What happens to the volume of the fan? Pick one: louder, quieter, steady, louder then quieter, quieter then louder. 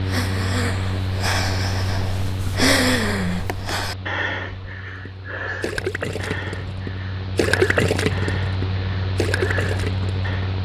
quieter then louder.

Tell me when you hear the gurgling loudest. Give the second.
8 s.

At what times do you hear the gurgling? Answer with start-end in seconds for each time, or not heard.
5.0-10.4.